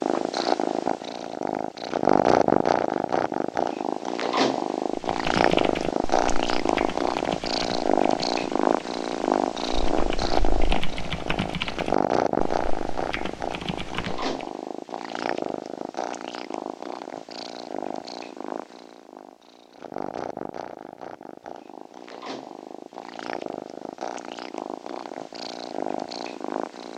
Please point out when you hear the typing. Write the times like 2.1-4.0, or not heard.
5.0-14.3.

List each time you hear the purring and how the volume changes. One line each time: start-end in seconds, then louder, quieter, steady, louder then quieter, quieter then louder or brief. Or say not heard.
0.0-26.9 quieter.